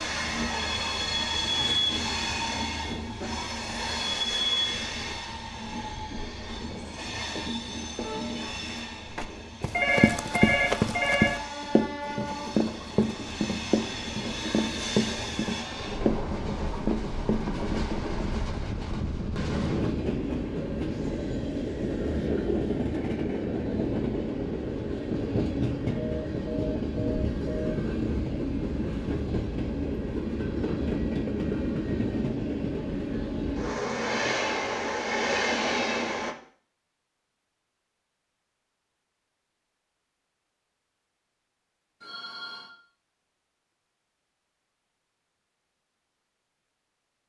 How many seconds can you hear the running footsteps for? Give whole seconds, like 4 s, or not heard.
9 s.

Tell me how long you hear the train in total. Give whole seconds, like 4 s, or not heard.
36 s.